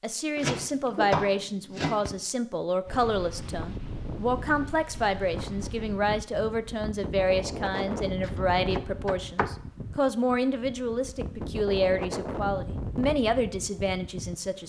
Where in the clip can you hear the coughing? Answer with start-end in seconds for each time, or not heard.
not heard.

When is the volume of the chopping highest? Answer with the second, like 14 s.
1 s.